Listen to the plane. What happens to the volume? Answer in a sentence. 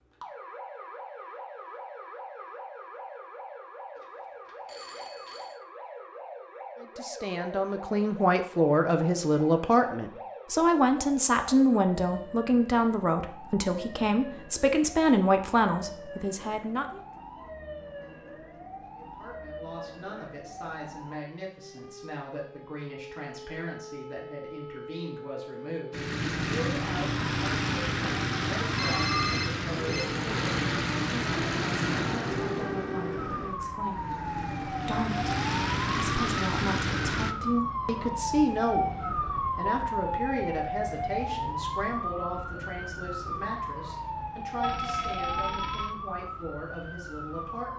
The volume of the plane goes down, then up.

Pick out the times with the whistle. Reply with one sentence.
You can't hear the whistle here.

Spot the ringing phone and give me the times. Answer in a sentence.
You can hear the ringing phone from 4.0 to 5.5 s, from 28.8 to 30.1 s and from 44.6 to 46.0 s.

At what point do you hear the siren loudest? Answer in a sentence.
The volume of the siren peaks at 39 seconds.